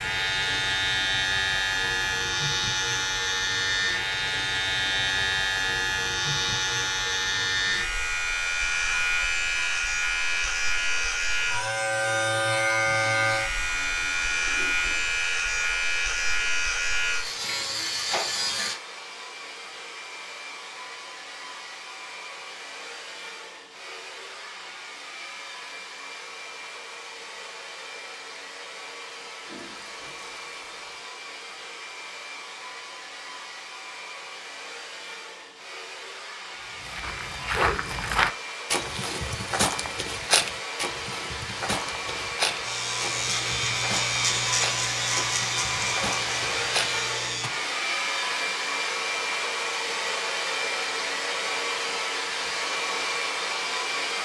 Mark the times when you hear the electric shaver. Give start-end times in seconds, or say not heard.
0.0-18.8, 42.6-47.5.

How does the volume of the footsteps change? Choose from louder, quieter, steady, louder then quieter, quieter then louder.
quieter.